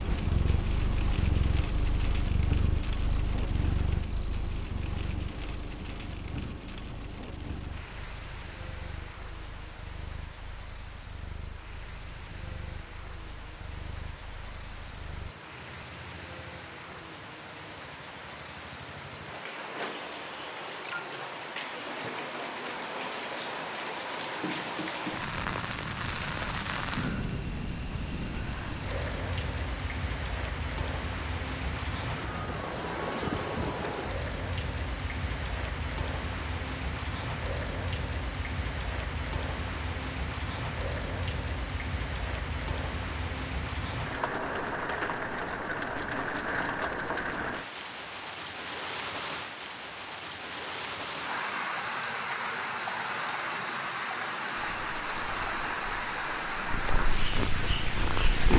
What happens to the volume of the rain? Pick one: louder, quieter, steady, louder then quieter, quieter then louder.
louder.